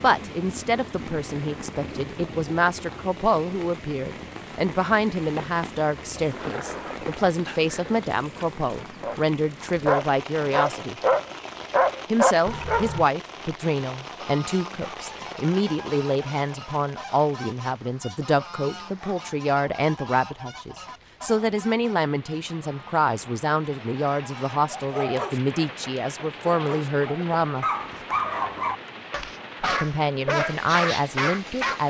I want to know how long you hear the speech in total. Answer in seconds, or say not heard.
29 s.